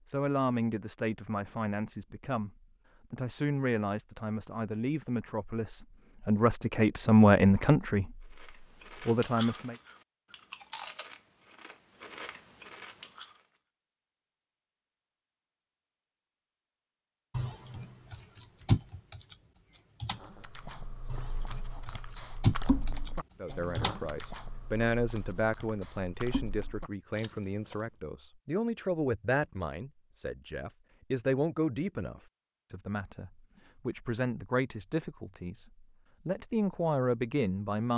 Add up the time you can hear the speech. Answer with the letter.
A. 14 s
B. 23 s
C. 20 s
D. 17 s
B.